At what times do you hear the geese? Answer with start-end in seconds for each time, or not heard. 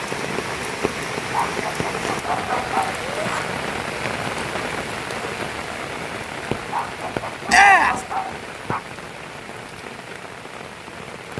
not heard.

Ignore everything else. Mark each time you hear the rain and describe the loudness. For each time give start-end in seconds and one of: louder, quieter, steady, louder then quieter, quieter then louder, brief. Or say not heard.
0.0-11.3 quieter.